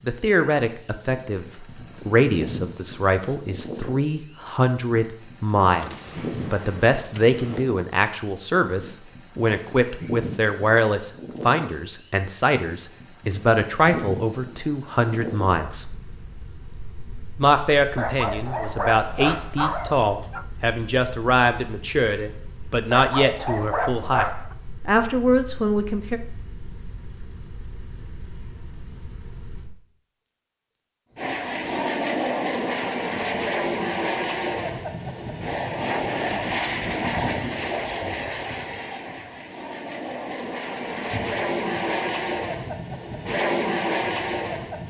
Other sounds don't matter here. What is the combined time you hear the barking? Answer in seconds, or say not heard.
4 s.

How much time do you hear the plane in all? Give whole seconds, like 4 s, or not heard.
14 s.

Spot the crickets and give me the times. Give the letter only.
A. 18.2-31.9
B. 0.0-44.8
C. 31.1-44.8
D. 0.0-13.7
B.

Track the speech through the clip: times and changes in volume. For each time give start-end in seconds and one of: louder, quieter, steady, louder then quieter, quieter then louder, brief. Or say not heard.
0.1-15.9 steady
17.4-26.2 steady.